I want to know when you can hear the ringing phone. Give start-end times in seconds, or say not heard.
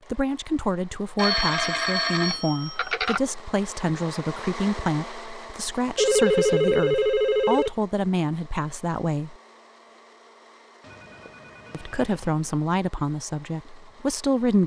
1.1-3.2, 6.0-7.7, 10.8-12.6.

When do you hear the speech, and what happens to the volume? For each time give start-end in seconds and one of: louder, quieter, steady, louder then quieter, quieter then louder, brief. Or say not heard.
0.1-9.3 steady
11.7-14.6 brief.